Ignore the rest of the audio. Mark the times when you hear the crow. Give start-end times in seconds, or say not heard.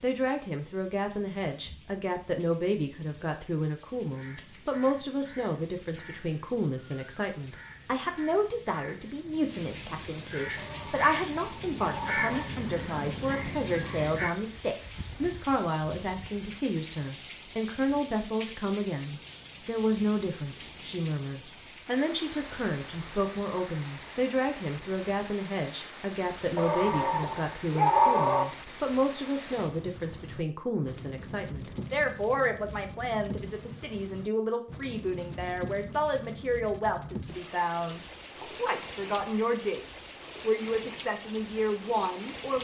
4.0-14.3.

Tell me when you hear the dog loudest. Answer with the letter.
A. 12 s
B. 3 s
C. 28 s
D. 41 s
C.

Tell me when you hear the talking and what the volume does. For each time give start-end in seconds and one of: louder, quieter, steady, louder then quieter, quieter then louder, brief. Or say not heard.
0.0-42.5 steady.